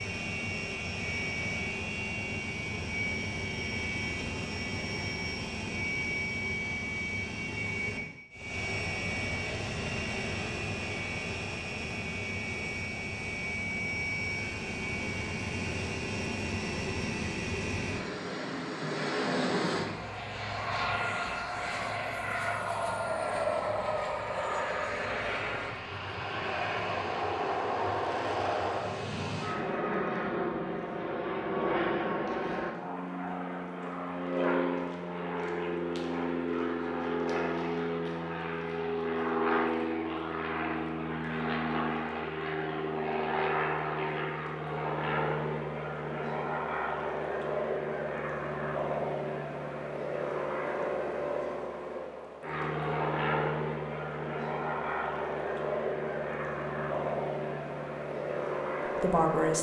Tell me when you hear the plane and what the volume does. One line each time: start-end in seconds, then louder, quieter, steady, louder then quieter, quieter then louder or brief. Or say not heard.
0.0-59.5 steady.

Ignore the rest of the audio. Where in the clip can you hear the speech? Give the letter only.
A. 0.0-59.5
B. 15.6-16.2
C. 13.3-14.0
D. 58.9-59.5
D.